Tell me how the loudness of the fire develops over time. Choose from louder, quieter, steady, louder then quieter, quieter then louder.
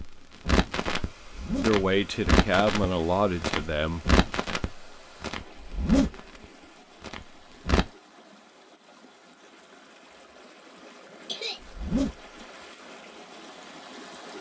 quieter.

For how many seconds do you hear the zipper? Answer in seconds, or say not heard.
2 s.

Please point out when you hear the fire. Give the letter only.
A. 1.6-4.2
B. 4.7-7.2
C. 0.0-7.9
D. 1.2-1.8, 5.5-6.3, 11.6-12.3
C.